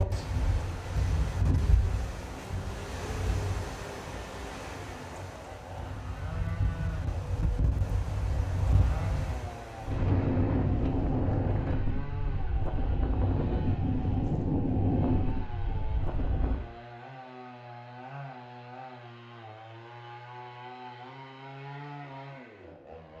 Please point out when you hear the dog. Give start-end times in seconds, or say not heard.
not heard.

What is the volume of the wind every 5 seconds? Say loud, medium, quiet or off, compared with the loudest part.
medium, medium, loud, loud, off.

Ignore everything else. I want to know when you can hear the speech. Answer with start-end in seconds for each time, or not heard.
not heard.